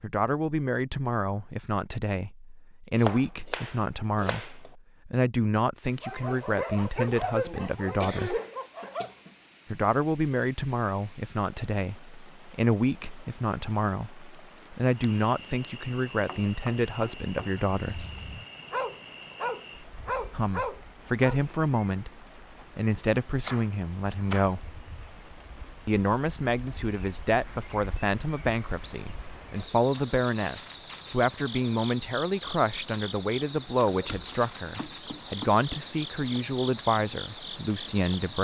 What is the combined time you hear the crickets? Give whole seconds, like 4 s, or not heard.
23 s.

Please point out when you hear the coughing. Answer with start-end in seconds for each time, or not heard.
7.4-9.3.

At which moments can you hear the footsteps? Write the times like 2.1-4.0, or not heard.
not heard.